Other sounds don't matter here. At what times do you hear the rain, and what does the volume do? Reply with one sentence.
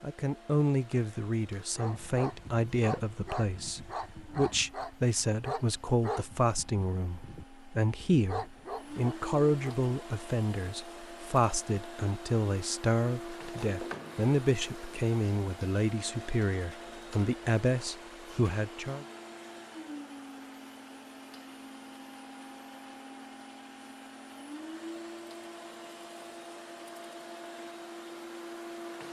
The rain can't be heard in this clip.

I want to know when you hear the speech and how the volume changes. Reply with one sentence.
You can hear the speech from 0.0 to 19.1 s, at a steady volume.